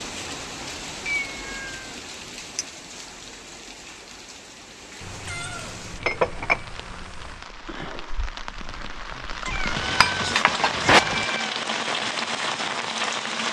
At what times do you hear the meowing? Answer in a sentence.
You can hear the meowing from 1.1 to 1.9 s, from 5.0 to 7.5 s and from 9.4 to 11.6 s.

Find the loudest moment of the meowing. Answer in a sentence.
The volume of the meowing peaks at 11 seconds.